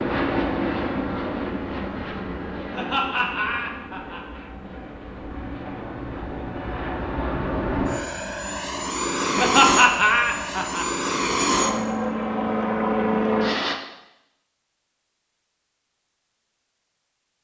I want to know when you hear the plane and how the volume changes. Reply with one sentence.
You can hear the plane from 0.0 to 13.8 s, getting quieter then louder.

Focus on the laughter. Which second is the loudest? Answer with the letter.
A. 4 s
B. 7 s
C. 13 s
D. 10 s
D.